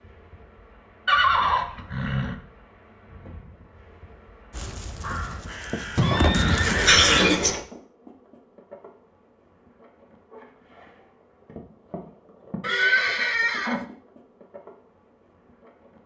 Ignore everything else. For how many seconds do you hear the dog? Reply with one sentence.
You can't hear the dog here.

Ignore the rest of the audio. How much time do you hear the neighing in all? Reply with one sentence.
You can hear the neighing for 4 seconds altogether.